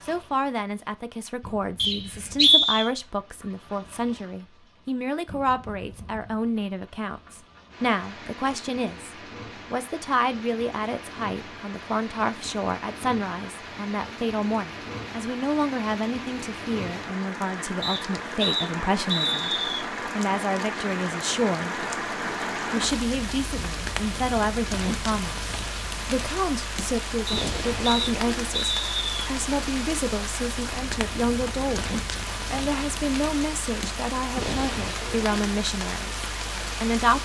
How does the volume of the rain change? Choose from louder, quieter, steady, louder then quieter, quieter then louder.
louder.